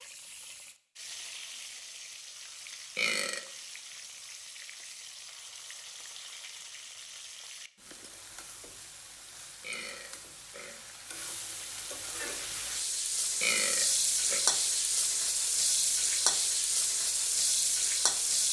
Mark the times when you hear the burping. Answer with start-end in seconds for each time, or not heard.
3.0-3.5, 9.6-10.8, 13.4-14.4.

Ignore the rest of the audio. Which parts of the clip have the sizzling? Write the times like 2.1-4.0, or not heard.
0.0-18.4.